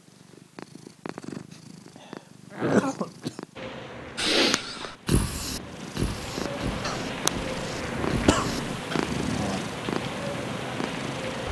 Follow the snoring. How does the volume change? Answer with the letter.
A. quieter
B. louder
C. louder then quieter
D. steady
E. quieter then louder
A.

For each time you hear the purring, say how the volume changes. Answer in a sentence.
You can hear the purring from 0.0 to 11.4 s, getting louder.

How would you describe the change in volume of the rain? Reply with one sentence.
The loudness of the rain goes up.